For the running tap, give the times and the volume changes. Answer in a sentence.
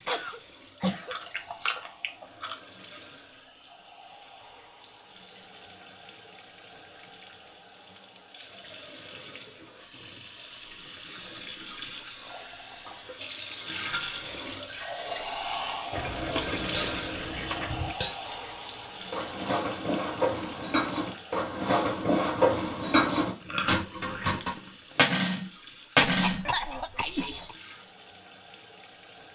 You can hear the running tap from 0.0 to 29.2 s, getting louder then quieter.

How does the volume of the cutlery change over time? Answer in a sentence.
The volume of the cutlery goes up.